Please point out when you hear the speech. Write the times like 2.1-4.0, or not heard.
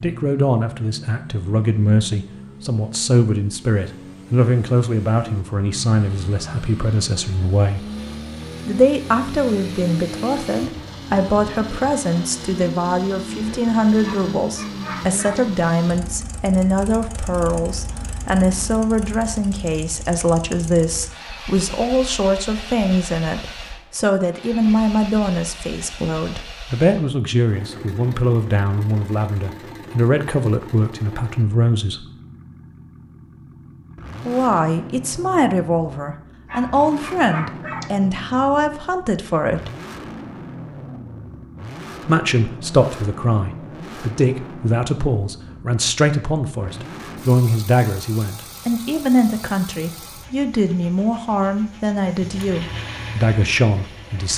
0.0-7.9, 8.7-32.0, 34.2-39.7, 42.0-54.3.